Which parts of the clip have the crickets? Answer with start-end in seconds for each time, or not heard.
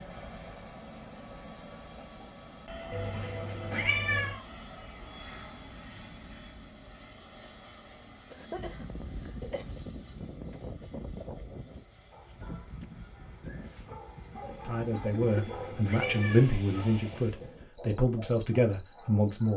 8.5-19.5.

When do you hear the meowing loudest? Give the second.
4 s.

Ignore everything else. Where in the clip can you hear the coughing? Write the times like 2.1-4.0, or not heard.
1.9-3.0, 8.3-9.8, 14.4-15.6.